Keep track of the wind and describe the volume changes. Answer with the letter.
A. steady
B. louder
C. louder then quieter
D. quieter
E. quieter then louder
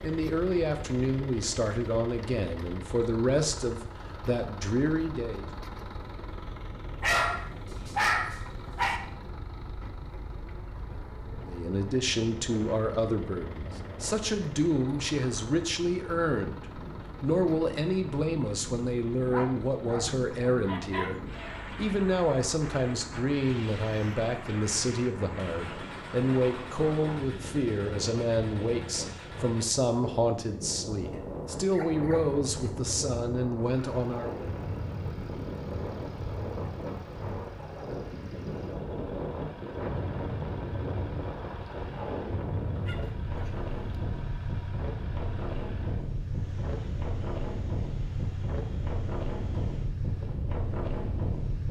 B.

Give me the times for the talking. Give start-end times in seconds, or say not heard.
0.0-5.5, 11.3-34.5.